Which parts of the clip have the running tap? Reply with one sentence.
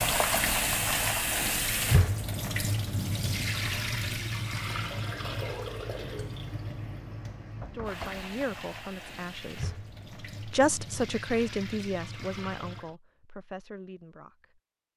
The running tap can be heard from 0.0 to 12.9 s.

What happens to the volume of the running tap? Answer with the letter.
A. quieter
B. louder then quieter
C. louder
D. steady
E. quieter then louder
A.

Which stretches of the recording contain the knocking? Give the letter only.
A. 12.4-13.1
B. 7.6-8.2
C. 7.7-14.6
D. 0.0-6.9
B.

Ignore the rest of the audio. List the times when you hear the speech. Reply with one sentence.
You can hear the speech from 7.7 to 14.6 s.